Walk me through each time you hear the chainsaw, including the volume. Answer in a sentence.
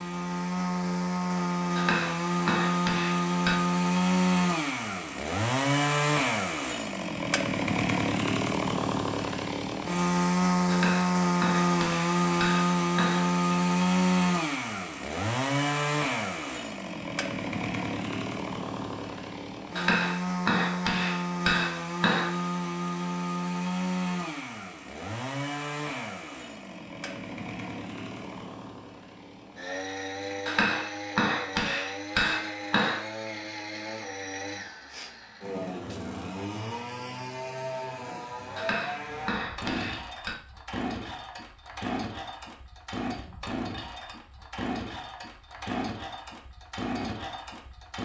You can hear the chainsaw from 0.0 to 47.9 s, getting quieter.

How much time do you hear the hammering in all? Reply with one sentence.
The hammering can be heard for 12 seconds in total.